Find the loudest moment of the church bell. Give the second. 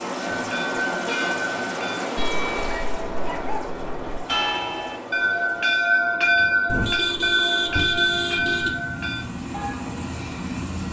6 s.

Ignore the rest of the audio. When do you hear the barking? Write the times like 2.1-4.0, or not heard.
2.6-3.6.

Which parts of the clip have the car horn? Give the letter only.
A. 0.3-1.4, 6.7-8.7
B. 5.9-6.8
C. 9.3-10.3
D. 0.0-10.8
A.